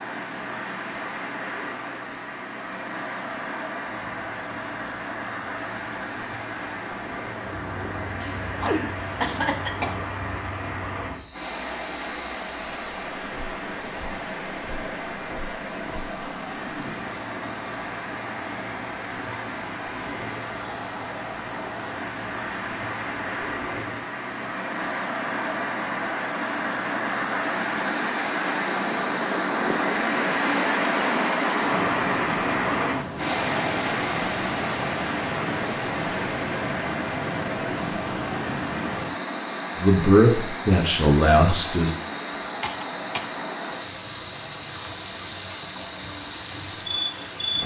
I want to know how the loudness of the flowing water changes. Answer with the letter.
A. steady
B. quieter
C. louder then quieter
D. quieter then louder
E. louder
C.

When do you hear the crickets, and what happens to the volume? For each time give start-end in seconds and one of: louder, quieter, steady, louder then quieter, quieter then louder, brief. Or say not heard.
0.0-47.6 louder.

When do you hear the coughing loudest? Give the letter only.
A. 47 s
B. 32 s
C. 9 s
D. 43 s
C.